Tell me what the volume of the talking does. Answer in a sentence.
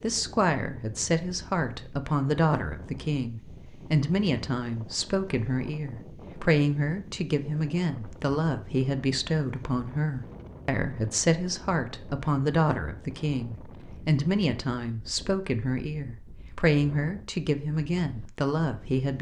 The loudness of the talking stays about the same.